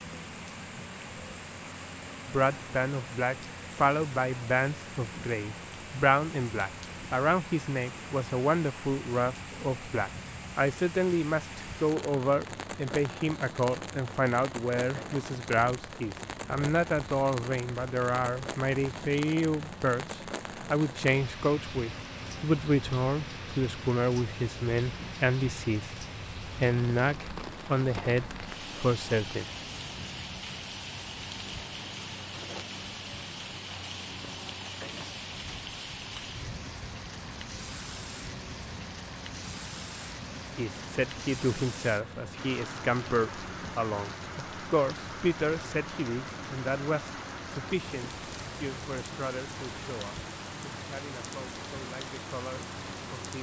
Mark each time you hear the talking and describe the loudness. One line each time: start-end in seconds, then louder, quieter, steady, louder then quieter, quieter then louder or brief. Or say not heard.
2.2-29.4 steady
40.5-53.3 quieter.